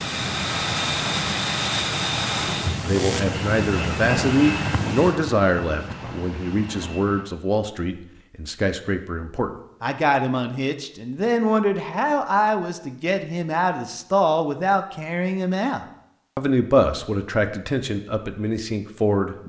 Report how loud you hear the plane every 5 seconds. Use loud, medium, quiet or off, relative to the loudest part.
loud, medium, off, off.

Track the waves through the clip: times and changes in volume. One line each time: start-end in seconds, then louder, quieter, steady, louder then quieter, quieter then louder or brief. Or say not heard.
not heard.